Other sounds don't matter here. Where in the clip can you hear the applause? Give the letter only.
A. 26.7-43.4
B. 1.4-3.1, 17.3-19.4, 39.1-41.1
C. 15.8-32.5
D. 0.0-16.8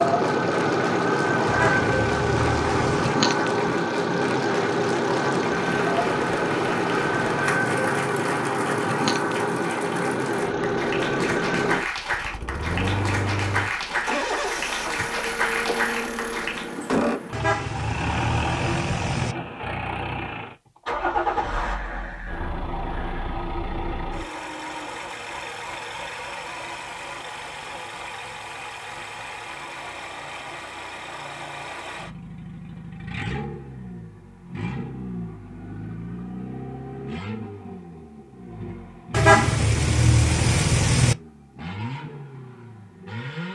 D.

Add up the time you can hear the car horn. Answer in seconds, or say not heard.
6 s.